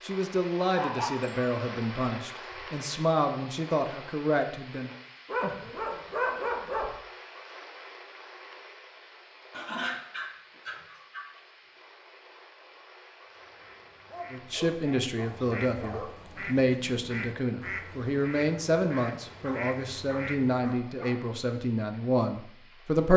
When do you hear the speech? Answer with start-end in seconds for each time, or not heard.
0.0-4.9, 14.3-23.1.